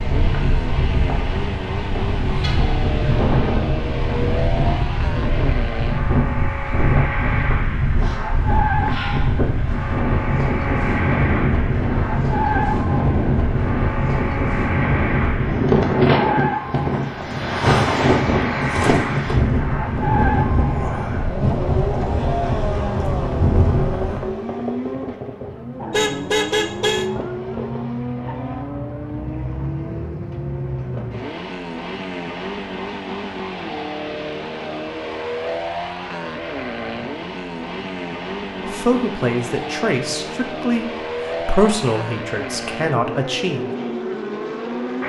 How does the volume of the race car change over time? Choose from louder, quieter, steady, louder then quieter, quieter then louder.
steady.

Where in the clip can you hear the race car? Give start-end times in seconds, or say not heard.
0.0-45.0.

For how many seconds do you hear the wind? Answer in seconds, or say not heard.
24 s.